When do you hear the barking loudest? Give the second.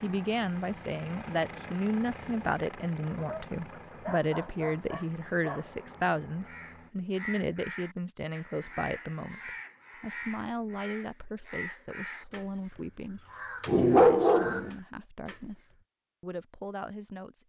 14 s.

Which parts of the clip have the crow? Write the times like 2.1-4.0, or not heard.
6.4-15.6.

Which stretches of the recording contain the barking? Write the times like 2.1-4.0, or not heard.
3.1-5.7, 13.7-14.7.